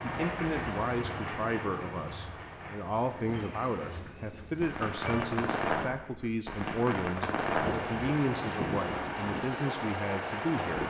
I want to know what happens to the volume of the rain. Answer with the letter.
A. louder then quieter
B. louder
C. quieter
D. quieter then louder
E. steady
D.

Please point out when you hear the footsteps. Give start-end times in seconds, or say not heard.
not heard.